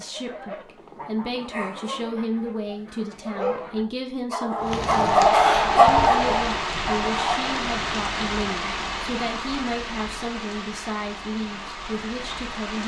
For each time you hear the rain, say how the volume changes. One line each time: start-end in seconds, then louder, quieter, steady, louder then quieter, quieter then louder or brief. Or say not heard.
4.6-12.8 quieter.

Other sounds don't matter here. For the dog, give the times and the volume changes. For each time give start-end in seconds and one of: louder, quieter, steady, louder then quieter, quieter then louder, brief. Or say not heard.
1.5-7.5 louder then quieter.